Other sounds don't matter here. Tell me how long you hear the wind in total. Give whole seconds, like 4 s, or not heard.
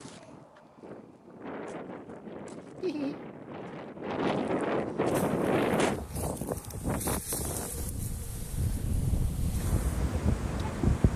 11 s.